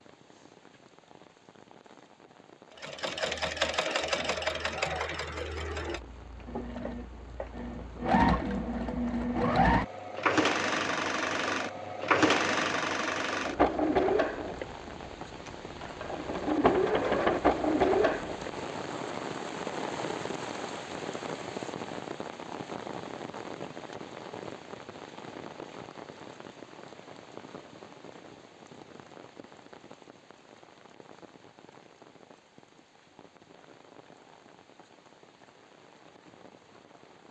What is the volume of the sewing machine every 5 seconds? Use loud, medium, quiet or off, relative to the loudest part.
loud, loud, loud, loud, off, off, off, off.